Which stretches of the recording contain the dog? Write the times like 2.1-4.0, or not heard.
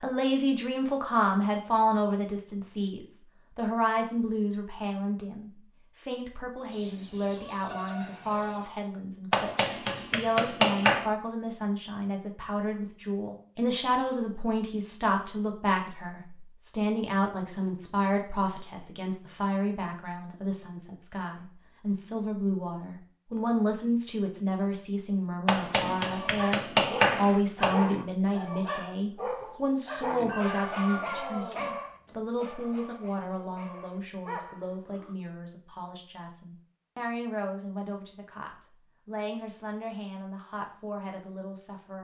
25.8-35.1.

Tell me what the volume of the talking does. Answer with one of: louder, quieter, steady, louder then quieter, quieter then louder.
quieter.